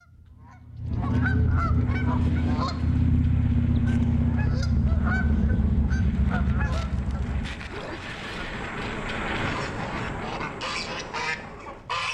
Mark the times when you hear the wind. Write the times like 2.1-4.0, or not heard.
1.8-12.0.